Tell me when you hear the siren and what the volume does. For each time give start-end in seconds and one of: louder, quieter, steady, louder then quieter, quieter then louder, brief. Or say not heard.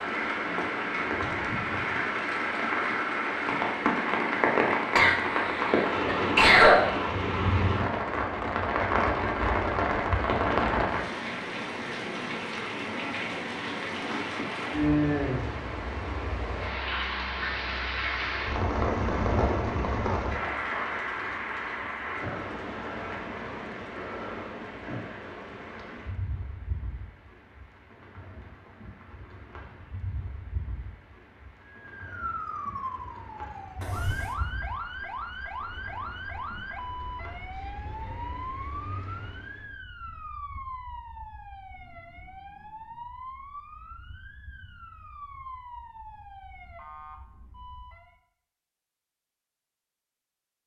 31.6-48.1 quieter.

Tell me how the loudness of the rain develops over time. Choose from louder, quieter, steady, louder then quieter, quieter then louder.
quieter.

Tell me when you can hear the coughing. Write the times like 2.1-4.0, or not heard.
5.0-6.9, 33.8-34.4.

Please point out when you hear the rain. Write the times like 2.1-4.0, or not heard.
0.0-39.8.